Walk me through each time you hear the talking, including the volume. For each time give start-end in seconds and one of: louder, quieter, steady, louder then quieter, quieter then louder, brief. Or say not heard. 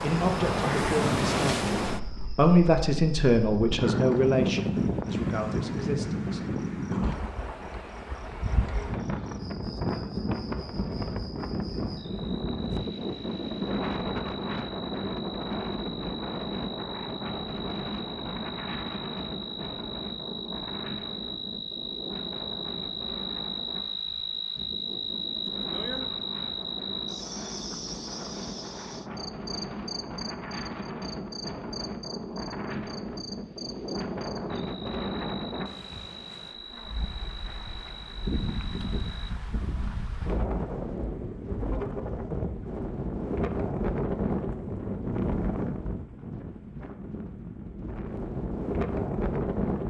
0.0-6.4 louder then quieter.